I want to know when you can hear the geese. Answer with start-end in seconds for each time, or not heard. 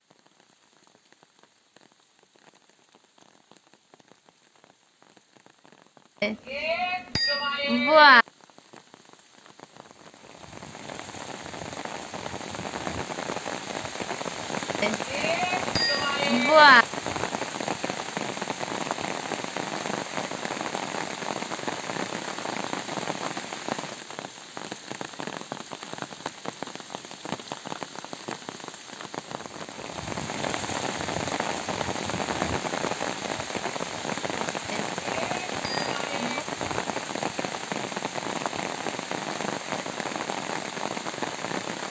not heard.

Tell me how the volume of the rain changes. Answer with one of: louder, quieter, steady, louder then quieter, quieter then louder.
louder.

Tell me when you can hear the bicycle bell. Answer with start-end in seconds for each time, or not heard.
6.2-8.2, 14.8-16.9, 34.7-36.5.